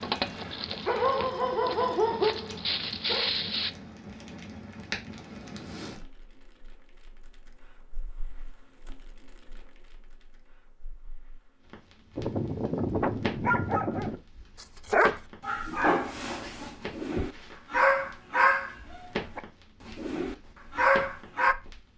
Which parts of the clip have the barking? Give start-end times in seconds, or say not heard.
0.0-3.7, 12.2-21.6.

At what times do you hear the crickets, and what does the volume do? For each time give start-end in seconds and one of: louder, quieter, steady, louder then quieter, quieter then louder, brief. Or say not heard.
not heard.